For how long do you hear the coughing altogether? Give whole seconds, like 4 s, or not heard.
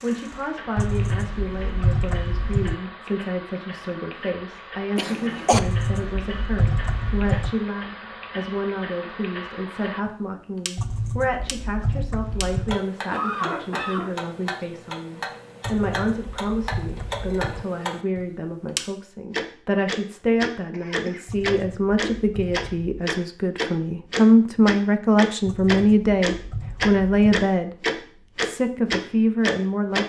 3 s.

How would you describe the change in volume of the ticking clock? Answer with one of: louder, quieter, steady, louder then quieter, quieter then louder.
louder.